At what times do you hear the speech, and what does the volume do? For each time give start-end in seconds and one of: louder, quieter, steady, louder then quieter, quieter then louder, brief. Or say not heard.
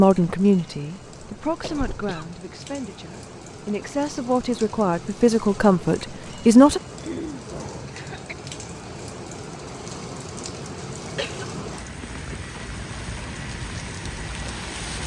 0.0-6.8 quieter then louder.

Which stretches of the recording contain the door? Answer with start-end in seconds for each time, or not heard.
not heard.